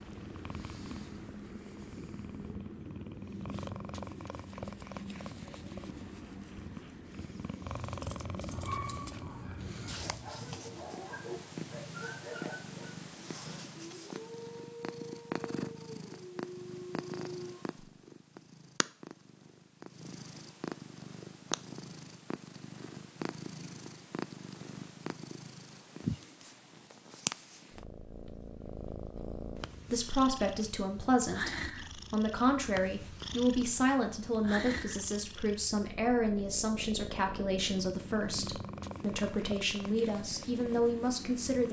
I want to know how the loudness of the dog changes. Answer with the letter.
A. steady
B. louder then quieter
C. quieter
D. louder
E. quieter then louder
A.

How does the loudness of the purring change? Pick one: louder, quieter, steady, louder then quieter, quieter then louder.
steady.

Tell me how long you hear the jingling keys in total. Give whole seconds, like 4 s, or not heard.
3 s.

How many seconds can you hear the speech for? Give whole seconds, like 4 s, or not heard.
12 s.